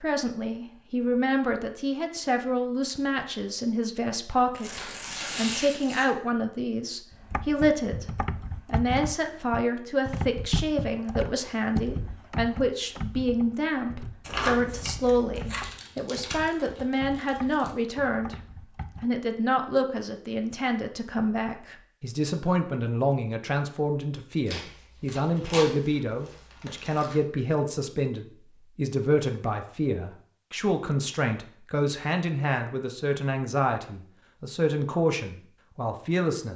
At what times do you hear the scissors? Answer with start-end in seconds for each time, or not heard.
14.2-15.7.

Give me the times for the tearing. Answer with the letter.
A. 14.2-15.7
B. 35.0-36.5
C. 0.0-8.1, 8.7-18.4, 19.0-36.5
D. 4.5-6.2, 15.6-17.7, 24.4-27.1
D.